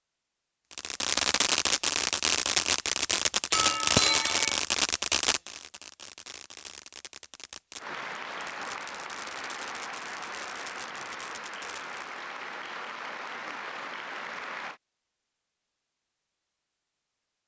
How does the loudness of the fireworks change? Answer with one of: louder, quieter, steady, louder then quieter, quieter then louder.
quieter.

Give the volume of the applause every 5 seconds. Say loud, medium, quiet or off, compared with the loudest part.
off, loud, loud, off.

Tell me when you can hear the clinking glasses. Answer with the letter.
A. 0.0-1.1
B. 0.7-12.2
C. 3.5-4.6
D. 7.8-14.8
C.